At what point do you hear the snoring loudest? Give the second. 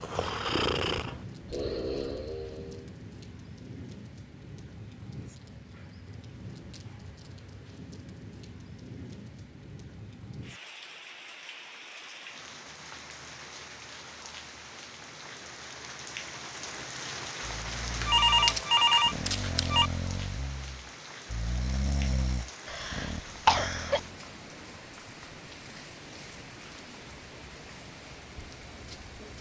1 s.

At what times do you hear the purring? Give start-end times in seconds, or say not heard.
not heard.